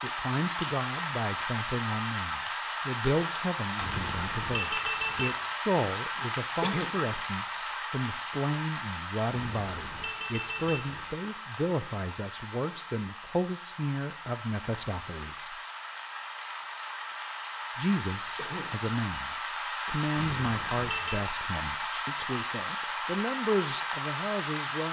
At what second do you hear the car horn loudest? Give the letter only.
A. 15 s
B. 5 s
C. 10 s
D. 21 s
B.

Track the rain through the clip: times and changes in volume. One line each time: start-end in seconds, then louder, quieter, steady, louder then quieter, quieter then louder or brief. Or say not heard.
0.0-24.8 quieter then louder.